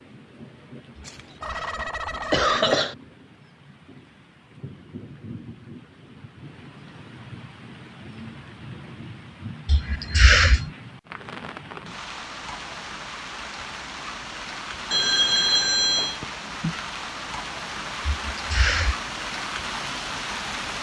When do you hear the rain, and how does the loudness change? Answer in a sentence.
You can hear the rain from 0.0 to 20.7 s, getting louder.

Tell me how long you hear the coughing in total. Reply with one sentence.
You can hear the coughing for 4 seconds altogether.